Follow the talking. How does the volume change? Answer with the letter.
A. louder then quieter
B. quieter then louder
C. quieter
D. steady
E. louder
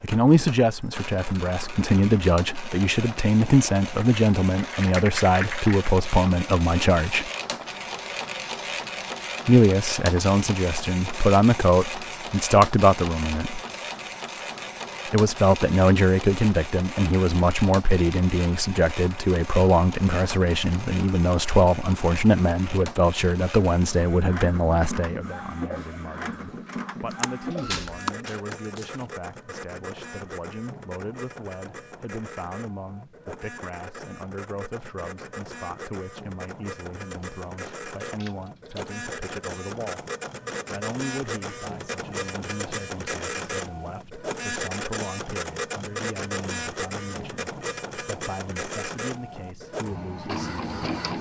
C.